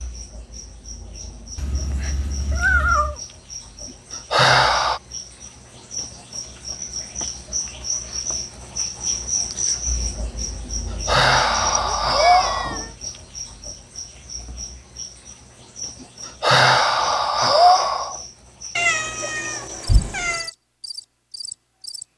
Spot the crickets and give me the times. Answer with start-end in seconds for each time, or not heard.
0.0-22.1.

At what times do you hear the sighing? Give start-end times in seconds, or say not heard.
4.3-5.0, 11.1-12.8, 16.4-18.1.